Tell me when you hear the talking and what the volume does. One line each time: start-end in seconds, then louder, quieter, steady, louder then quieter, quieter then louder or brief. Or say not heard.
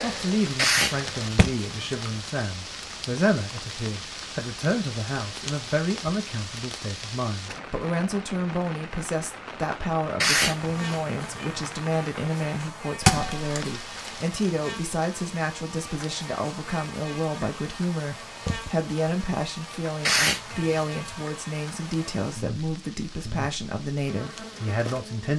0.0-25.3 steady.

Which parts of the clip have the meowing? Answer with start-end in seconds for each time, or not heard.
0.6-2.0, 10.2-11.7, 20.1-21.0.